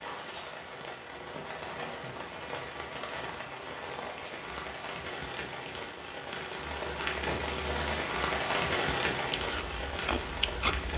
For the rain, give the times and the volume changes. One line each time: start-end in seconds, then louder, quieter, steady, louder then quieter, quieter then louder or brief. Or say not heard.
0.0-10.9 louder.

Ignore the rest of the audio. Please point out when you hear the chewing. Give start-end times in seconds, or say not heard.
9.3-10.9.